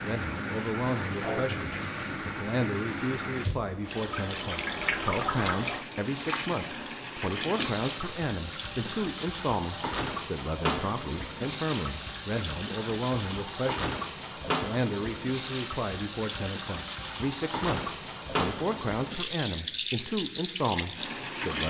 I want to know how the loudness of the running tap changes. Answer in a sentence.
The loudness of the running tap stays about the same.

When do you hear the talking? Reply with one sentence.
The talking can be heard from 0.0 to 21.6 s.